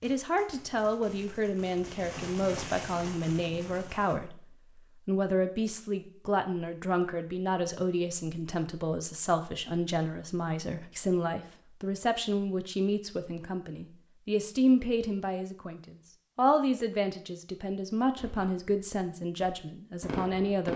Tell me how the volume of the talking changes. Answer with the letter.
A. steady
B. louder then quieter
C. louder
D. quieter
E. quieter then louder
A.